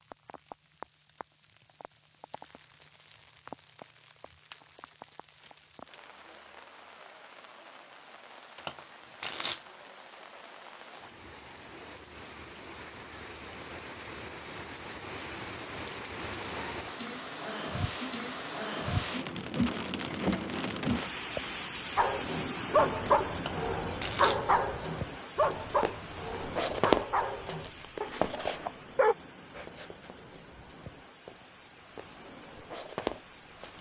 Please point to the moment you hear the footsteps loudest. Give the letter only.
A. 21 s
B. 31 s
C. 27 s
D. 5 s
C.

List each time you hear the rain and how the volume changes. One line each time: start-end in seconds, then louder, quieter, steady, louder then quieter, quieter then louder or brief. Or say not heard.
0.0-33.7 louder then quieter.